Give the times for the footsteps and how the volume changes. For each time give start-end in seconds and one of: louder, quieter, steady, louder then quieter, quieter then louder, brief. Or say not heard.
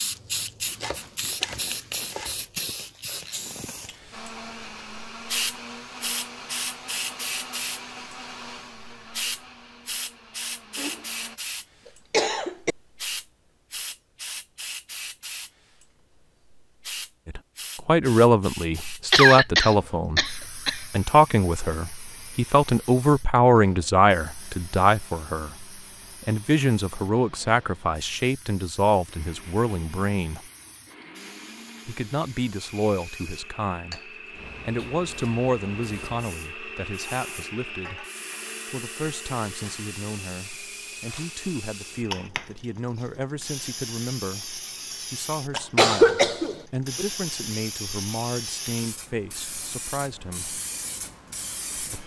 not heard.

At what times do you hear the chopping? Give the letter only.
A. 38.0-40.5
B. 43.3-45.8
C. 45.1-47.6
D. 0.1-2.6
D.